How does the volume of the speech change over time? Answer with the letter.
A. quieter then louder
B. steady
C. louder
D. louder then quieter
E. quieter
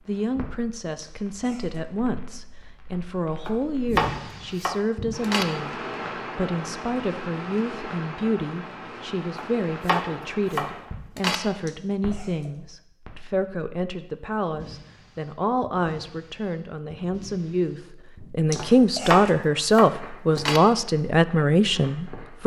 C.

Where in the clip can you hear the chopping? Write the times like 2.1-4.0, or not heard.
3.5-5.5, 9.3-11.4, 18.6-20.6.